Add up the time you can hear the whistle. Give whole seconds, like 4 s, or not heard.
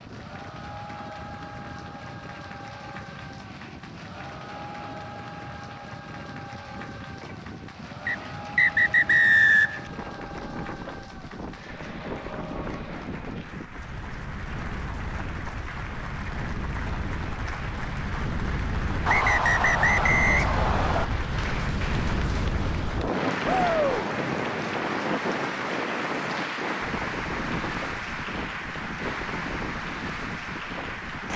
4 s.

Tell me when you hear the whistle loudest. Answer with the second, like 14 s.
9 s.